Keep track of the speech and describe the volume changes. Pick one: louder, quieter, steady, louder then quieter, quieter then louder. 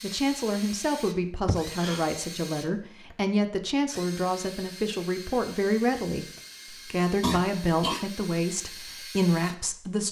steady.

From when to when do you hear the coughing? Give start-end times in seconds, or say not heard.
1.4-2.0, 7.2-8.1.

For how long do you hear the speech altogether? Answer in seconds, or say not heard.
10 s.